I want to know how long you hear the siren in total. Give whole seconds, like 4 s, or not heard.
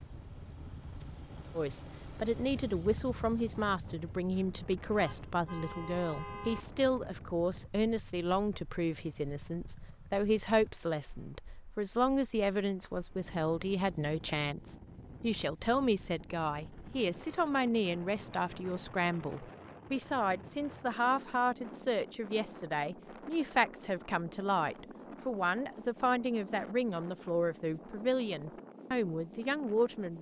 not heard.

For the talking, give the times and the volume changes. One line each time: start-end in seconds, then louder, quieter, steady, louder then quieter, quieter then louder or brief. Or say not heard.
1.6-30.1 steady.